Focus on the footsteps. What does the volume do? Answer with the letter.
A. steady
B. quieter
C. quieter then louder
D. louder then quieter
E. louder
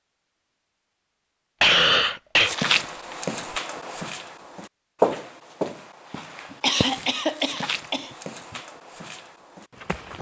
D.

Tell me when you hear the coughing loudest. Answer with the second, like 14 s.
2 s.